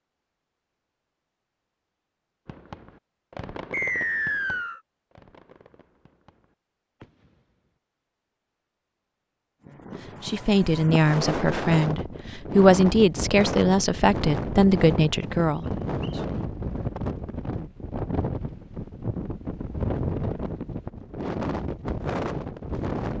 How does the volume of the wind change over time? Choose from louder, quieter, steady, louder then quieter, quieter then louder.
steady.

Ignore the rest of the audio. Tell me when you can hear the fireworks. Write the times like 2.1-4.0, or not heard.
2.5-7.8.